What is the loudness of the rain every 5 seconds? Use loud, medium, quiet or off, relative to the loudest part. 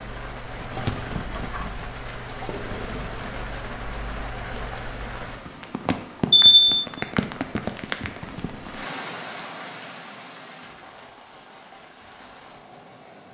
loud, loud, quiet.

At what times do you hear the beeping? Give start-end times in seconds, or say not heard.
6.3-6.8.